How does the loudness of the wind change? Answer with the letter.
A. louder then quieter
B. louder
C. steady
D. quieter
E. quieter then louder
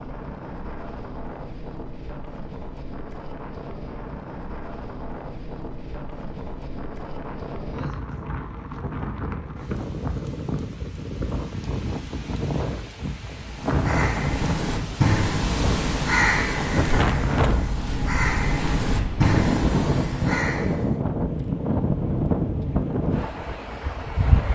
B.